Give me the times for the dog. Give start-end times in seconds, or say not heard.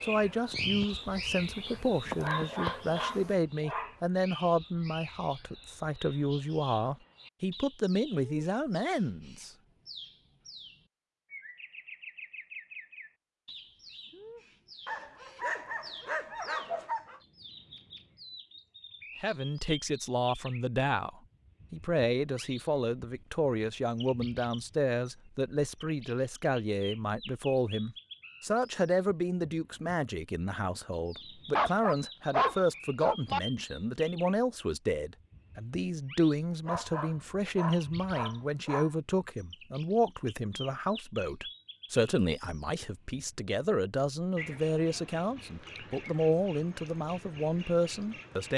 1.6-4.0, 14.8-17.2, 31.6-33.4, 36.6-39.0.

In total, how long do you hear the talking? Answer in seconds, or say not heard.
39 s.